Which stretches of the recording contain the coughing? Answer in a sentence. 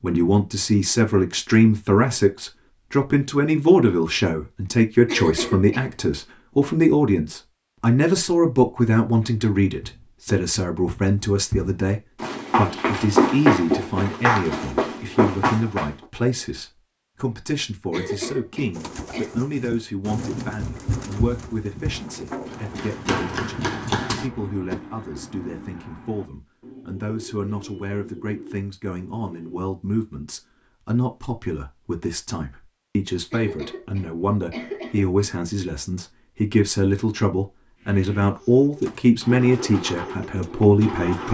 The coughing can be heard from 5.0 to 5.9 s, from 17.9 to 19.4 s and from 33.3 to 35.1 s.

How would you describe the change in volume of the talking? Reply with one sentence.
The volume of the talking goes down, then up.